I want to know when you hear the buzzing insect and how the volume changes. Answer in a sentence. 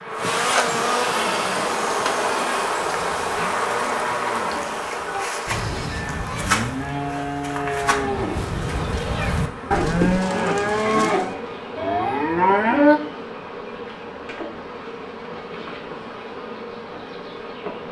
You can hear the buzzing insect from 0.0 to 17.8 s, getting quieter.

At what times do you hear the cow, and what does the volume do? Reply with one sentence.
You can hear the cow from 1.1 to 13.0 s, getting louder.